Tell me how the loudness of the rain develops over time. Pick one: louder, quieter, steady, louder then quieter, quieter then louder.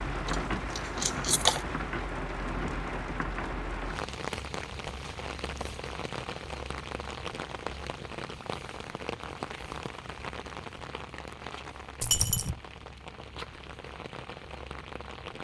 quieter.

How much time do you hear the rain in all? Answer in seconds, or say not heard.
15 s.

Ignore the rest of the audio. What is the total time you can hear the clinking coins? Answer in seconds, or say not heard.
2 s.